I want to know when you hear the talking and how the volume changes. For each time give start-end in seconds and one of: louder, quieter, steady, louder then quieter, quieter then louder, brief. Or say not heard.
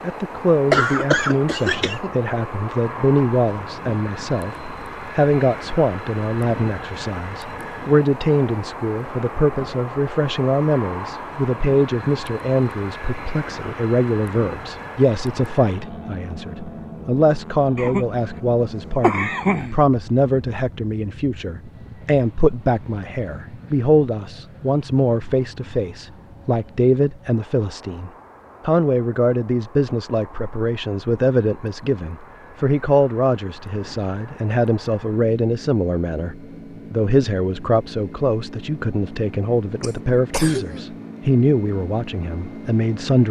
0.0-43.2 steady.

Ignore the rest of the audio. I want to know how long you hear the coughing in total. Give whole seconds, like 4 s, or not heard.
4 s.